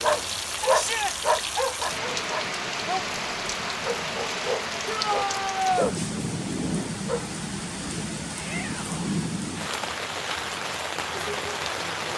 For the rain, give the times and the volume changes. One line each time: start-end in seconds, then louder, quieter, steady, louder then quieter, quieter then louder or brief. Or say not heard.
0.0-12.1 steady.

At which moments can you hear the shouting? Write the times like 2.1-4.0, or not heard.
0.7-1.1, 4.8-6.0, 8.3-9.0.